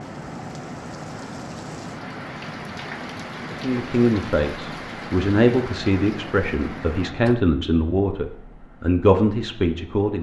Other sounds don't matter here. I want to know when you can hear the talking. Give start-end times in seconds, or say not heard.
3.5-10.1.